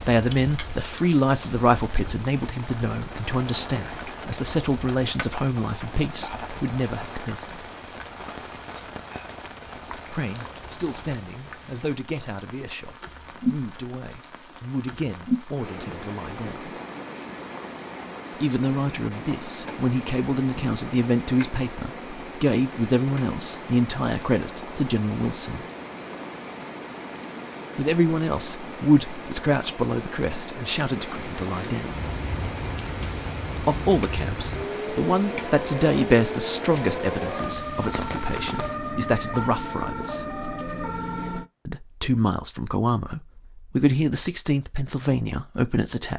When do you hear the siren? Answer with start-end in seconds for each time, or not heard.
31.9-41.5.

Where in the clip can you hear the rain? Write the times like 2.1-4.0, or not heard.
0.0-38.8.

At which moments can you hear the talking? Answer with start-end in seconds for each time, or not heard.
0.1-7.7, 10.1-16.8, 18.4-25.6, 27.8-32.0, 33.6-40.4, 41.6-46.1.